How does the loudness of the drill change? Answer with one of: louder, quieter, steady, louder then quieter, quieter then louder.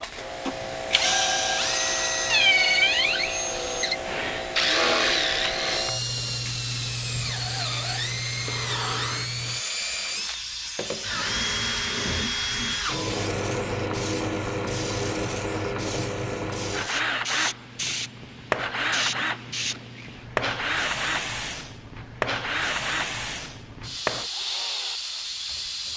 quieter.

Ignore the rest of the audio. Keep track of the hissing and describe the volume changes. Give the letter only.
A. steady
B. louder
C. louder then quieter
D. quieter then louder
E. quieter
A.